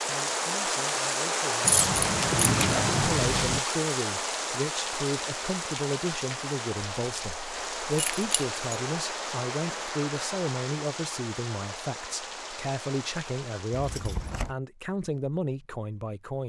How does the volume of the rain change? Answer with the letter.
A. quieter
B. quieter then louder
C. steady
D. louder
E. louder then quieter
A.